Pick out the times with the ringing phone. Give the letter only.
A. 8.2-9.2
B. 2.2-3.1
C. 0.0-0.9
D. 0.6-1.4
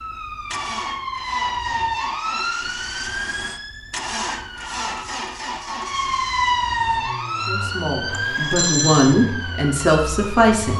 A.